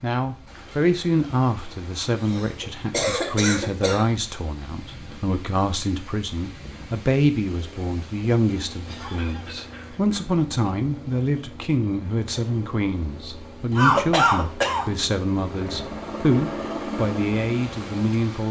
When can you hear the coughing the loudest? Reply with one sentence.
The volume of the coughing peaks at 14 seconds.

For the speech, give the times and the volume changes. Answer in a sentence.
The speech can be heard from 0.0 to 18.4 s, at a steady volume.